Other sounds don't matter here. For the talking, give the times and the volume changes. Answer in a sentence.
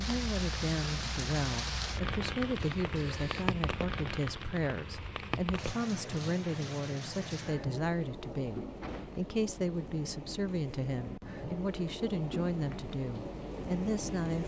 You can hear the talking from 0.0 to 14.4 s, at a steady volume.